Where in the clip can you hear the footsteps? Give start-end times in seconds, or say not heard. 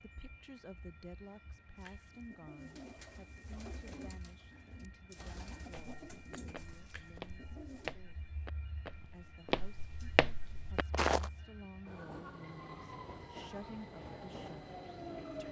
5.7-11.3.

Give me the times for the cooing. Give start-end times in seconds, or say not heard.
1.8-8.0.